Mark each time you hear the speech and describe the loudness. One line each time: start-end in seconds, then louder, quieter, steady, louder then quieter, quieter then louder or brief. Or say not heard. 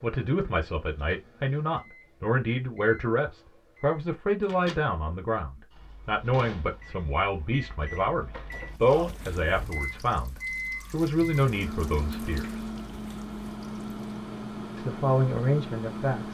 0.0-12.7 steady
14.8-16.2 brief.